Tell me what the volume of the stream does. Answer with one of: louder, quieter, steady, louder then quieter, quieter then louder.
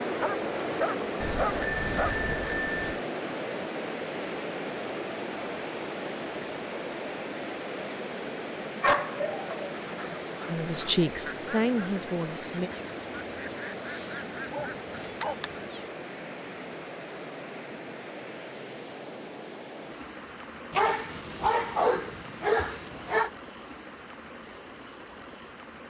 quieter.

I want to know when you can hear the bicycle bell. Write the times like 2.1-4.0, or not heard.
1.2-3.0.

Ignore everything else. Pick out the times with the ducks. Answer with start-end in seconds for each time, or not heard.
9.8-16.3.